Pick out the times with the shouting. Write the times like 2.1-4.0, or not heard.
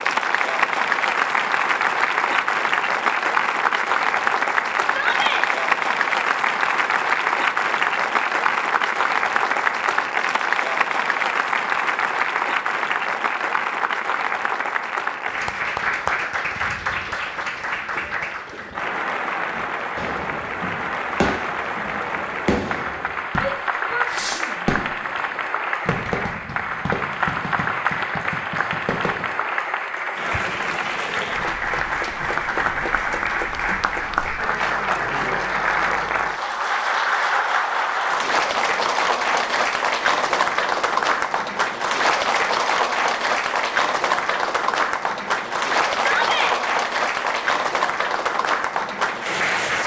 4.8-5.5, 23.4-24.6, 46.0-46.5.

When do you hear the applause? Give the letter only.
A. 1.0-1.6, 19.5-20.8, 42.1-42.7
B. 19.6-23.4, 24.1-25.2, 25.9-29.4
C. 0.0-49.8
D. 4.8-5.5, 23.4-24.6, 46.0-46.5
C.